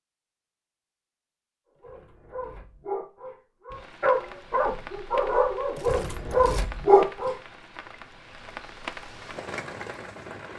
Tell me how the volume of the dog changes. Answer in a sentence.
The volume of the dog goes up.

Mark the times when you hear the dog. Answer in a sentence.
You can hear the dog from 1.8 to 7.3 s.